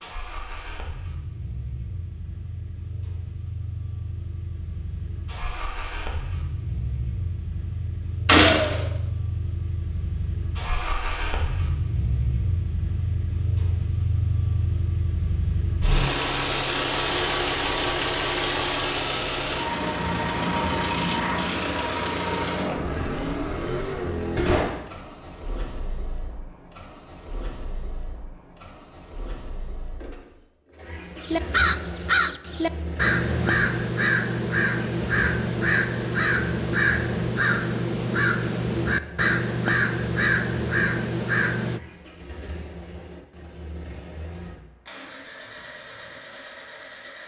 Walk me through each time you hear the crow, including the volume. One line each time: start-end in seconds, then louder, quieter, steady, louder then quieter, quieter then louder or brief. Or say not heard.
31.2-41.8 steady.